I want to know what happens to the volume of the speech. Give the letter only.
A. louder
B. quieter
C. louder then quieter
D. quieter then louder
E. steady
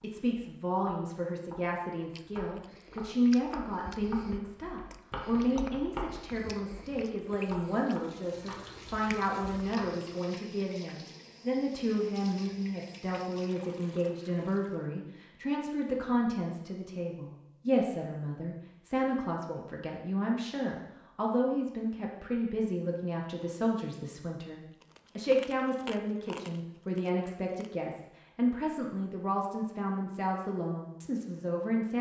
E.